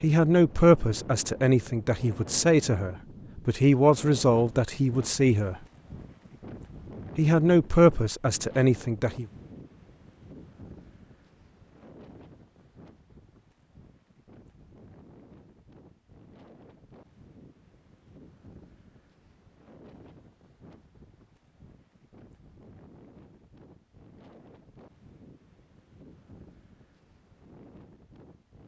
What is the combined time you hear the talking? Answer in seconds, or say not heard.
8 s.